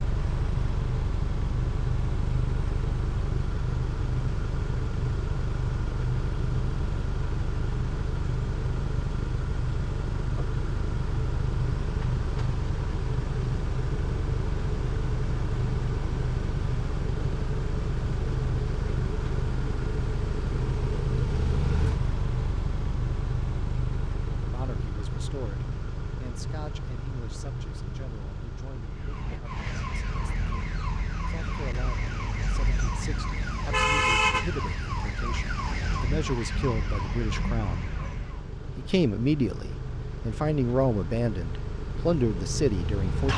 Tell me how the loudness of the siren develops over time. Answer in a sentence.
The volume of the siren goes up, then down.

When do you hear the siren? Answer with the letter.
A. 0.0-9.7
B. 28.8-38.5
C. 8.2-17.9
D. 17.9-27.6
B.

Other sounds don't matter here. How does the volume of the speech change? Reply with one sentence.
The loudness of the speech goes up.